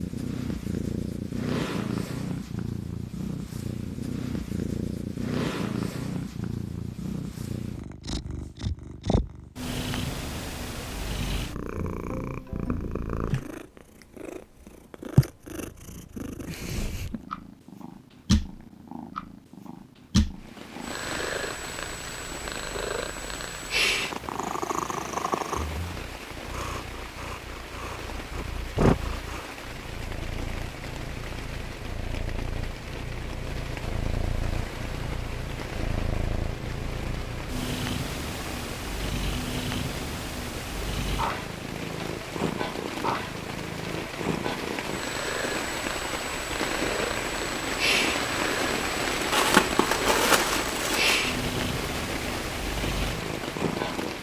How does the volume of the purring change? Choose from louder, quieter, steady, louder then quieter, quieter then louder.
steady.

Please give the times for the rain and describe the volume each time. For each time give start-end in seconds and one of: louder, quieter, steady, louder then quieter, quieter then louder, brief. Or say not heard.
20.4-54.1 louder.